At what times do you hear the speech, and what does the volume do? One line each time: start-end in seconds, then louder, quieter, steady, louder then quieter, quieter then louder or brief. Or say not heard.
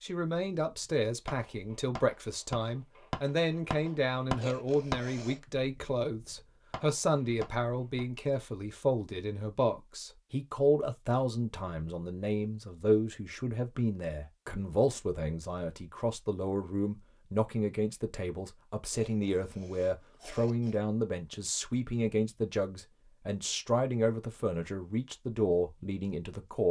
0.0-26.6 steady.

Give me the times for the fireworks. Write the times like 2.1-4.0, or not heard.
0.7-8.0.